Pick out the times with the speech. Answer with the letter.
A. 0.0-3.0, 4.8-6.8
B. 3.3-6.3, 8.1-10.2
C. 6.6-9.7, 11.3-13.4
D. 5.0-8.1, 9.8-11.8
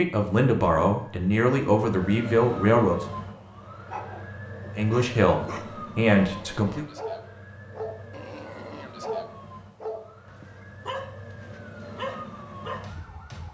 A.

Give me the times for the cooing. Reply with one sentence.
You can't hear the cooing here.